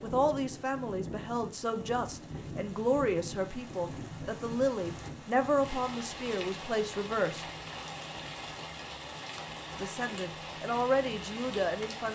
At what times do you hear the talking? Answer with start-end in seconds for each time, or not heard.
0.0-7.5, 9.7-12.1.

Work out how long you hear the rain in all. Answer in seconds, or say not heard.
12 s.